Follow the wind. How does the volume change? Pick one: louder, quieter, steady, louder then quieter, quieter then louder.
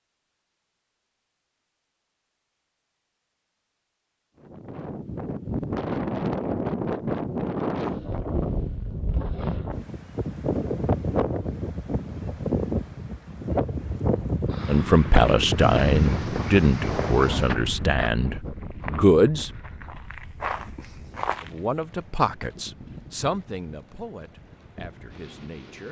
quieter.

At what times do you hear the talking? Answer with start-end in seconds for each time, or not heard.
14.7-19.5, 21.4-25.8.